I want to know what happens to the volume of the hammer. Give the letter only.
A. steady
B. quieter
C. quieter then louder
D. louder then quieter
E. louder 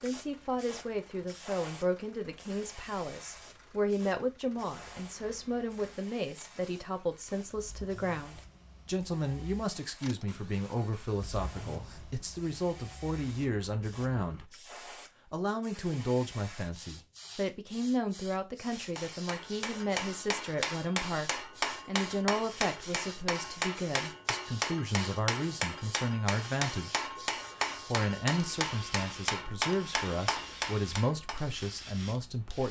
A.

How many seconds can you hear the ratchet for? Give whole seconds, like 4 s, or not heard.
not heard.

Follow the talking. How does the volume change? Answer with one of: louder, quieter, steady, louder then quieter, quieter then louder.
steady.